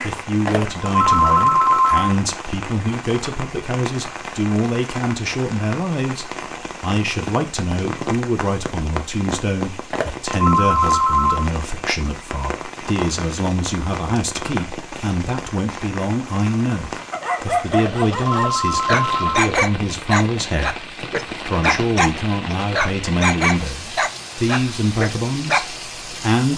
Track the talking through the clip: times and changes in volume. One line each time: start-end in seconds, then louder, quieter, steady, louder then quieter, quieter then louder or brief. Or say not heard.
0.0-26.5 steady.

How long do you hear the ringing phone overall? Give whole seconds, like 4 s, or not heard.
5 s.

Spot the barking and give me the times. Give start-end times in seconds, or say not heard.
17.1-25.6.